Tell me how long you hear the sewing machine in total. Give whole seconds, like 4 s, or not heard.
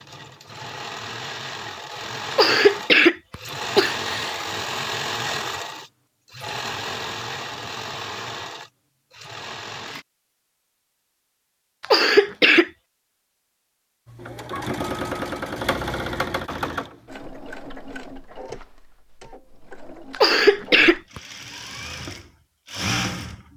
19 s.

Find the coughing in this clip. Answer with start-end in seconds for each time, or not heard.
2.3-4.4, 11.8-12.7, 20.1-21.2.